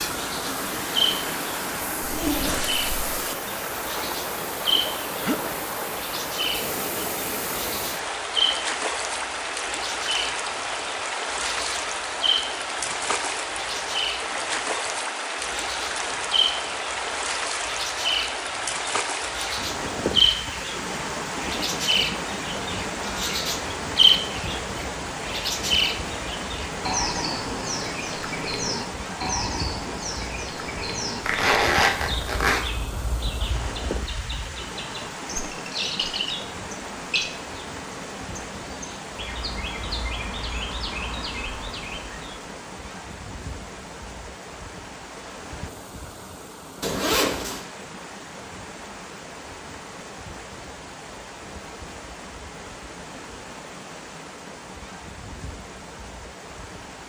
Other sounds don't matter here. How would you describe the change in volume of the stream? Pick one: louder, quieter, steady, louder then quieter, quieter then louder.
quieter.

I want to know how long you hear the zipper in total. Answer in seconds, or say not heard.
3 s.